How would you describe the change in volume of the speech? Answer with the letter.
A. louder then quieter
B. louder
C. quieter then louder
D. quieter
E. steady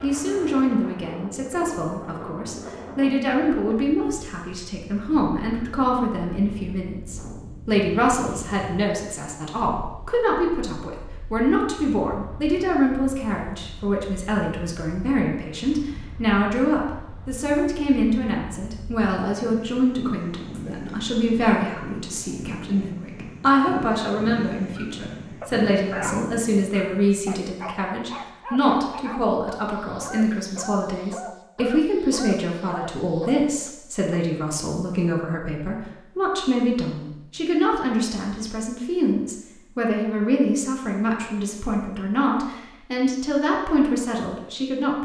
E.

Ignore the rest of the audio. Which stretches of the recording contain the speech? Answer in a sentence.
You can hear the speech from 0.0 to 45.0 s.